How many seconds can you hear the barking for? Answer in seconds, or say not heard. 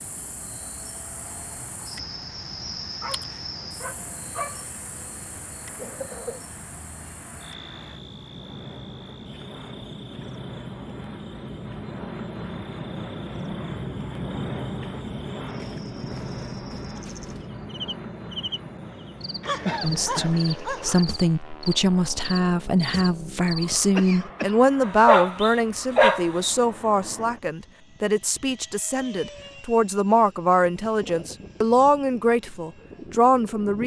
5 s.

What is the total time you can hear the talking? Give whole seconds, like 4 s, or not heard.
14 s.